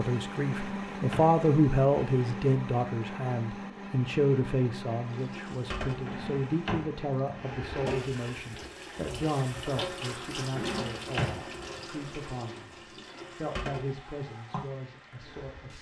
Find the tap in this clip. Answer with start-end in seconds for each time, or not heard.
5.0-15.7.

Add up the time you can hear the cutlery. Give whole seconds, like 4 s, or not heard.
not heard.